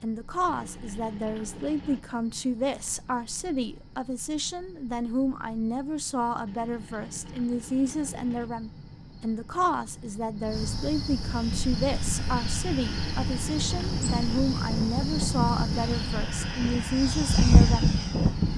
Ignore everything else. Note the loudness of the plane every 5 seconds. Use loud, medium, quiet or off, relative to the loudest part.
off, off, medium, loud.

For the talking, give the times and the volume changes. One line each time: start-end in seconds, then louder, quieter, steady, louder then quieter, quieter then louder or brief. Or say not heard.
0.0-17.9 steady.